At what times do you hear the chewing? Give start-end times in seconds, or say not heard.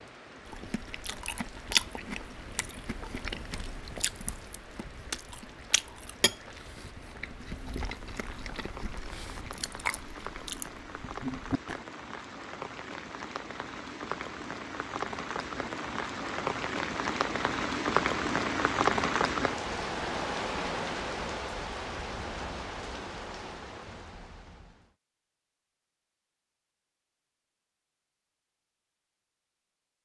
0.5-11.8.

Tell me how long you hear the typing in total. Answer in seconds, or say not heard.
not heard.